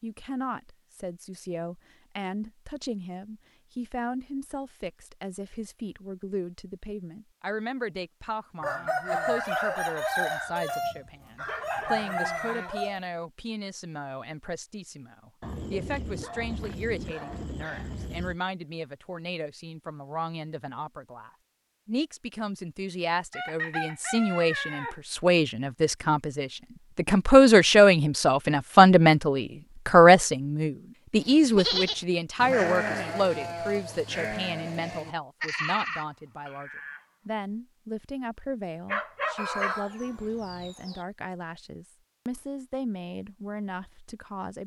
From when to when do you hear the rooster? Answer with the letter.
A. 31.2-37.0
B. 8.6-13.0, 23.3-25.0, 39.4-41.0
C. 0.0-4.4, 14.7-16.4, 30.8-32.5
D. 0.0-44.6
B.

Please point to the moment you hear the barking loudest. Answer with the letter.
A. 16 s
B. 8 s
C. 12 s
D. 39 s
D.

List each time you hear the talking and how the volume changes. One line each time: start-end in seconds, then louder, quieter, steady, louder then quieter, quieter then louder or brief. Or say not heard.
0.0-44.6 louder then quieter.